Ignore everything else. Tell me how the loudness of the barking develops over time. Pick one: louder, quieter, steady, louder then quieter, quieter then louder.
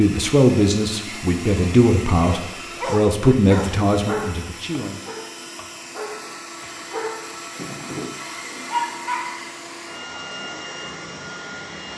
quieter then louder.